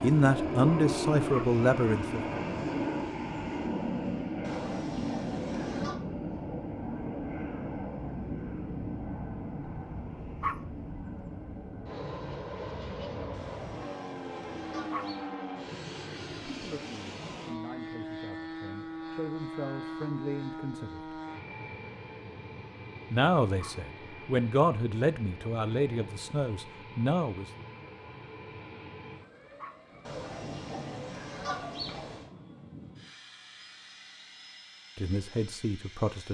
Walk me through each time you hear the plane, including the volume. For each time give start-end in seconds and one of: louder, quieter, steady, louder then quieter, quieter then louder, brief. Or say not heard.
0.0-36.2 quieter.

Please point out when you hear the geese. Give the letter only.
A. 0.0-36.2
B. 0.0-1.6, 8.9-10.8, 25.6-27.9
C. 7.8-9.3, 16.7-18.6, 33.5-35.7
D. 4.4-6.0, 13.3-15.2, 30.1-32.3
D.